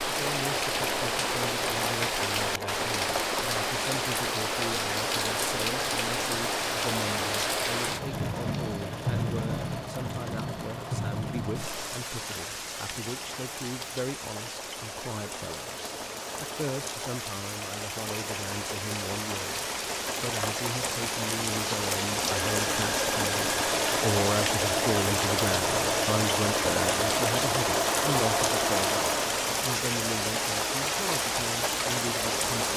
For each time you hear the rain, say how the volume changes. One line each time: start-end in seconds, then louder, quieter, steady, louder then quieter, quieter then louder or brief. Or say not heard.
0.0-32.7 quieter then louder.